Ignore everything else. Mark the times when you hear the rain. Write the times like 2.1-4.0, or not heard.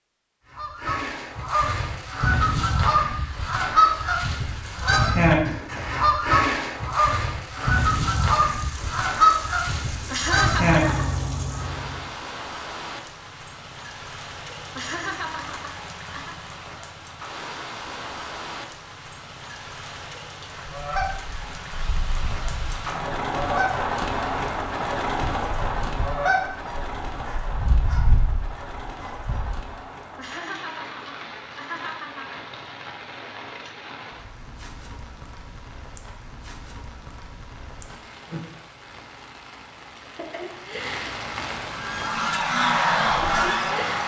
7.5-44.0.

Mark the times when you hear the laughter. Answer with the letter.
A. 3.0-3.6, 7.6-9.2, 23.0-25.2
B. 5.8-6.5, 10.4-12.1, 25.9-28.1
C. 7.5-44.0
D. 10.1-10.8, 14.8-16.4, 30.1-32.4
D.